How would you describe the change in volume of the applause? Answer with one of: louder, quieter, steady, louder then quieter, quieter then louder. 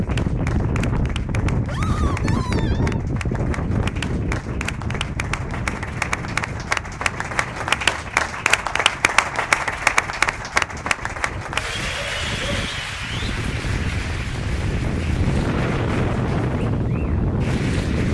louder then quieter.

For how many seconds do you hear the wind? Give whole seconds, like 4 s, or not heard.
18 s.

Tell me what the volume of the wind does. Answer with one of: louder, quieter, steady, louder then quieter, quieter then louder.
quieter then louder.